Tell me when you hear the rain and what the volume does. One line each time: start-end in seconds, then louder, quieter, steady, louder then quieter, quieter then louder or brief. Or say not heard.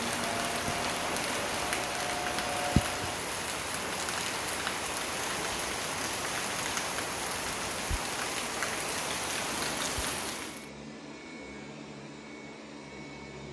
0.0-10.7 steady.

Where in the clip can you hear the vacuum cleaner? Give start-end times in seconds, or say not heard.
0.0-3.2, 9.4-13.4.